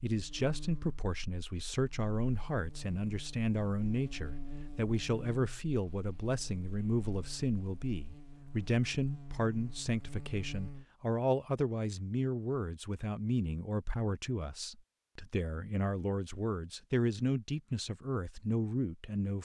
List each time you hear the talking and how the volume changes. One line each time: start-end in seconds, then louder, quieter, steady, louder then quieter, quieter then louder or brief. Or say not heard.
0.0-19.4 steady.